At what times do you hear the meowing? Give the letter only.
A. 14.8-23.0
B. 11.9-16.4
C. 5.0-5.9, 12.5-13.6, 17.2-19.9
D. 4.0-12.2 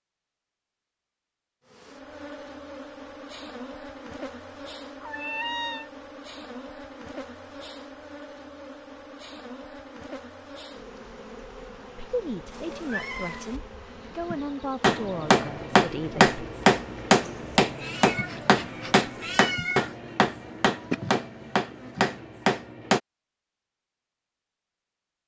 C.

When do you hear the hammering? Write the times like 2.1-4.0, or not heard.
14.8-23.0.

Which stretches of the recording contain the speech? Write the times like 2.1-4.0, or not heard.
11.9-16.4.